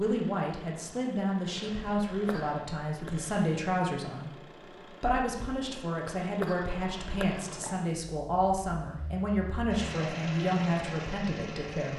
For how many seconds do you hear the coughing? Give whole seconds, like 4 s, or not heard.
2 s.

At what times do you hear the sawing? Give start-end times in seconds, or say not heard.
not heard.